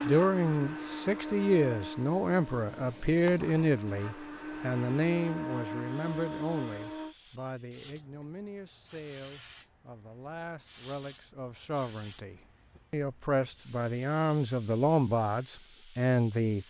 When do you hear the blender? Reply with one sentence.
The blender can be heard from 0.0 to 7.2 s.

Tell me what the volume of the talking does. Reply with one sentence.
The volume of the talking goes down, then up.